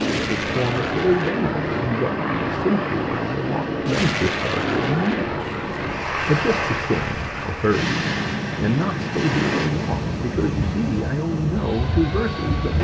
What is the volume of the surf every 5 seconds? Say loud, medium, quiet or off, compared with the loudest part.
loud, loud, medium.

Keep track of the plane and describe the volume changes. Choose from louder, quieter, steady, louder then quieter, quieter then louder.
steady.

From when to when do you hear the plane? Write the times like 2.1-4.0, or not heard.
0.0-12.7.